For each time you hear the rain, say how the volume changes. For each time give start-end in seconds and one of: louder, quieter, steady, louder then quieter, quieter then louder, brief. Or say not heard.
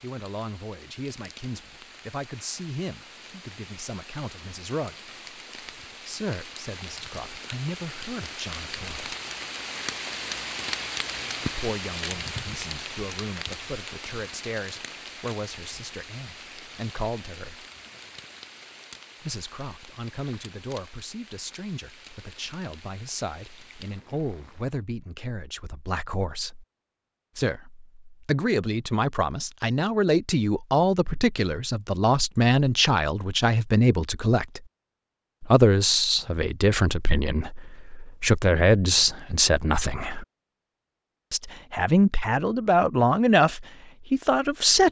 0.0-24.8 louder then quieter.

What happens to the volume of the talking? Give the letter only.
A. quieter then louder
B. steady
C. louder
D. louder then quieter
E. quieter
C.